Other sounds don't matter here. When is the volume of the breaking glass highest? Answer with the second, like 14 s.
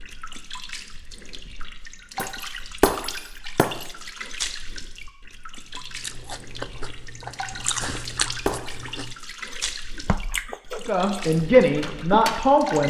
3 s.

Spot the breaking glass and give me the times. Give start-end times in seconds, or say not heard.
2.1-3.9, 7.8-8.7.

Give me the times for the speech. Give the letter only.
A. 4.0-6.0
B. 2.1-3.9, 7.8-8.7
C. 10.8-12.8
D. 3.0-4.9
C.